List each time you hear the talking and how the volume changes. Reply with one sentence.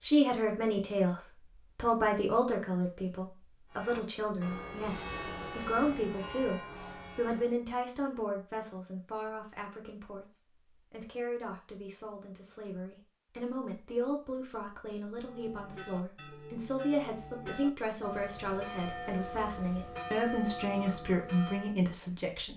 The talking can be heard from 0.0 to 22.5 s, getting quieter then louder.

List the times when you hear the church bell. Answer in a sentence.
The church bell can be heard from 3.7 to 7.5 s and from 15.2 to 21.8 s.